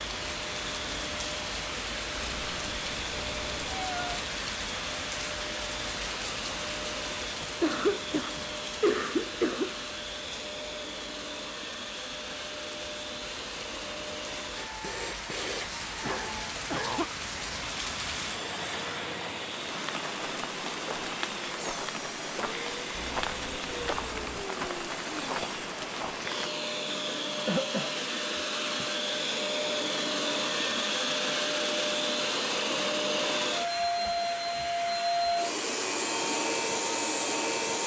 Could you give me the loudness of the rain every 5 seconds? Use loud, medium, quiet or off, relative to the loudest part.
loud, loud, medium, loud, loud, loud, off, off.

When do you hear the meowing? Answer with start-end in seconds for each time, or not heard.
2.2-4.0, 22.9-24.5.